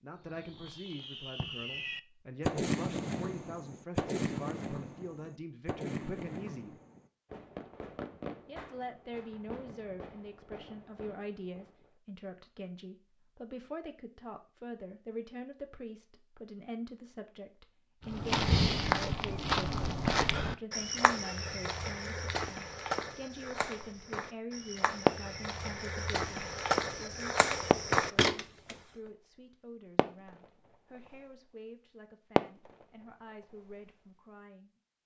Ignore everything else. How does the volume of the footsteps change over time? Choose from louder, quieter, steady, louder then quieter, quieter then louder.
quieter then louder.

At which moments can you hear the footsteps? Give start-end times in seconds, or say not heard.
18.1-28.8.